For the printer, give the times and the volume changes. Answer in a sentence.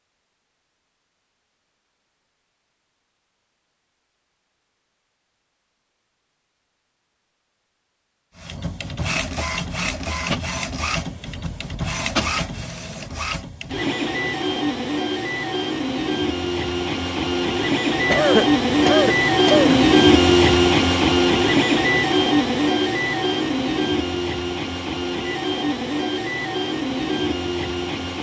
You can hear the printer from 8.3 to 28.1 s, getting louder then quieter.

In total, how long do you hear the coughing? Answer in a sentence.
You can hear the coughing for 2 seconds altogether.